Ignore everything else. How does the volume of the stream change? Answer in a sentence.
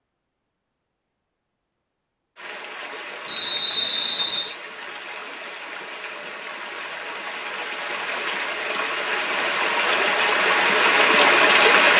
The volume of the stream goes up.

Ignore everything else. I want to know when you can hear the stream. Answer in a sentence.
The stream can be heard from 2.4 to 11.9 s.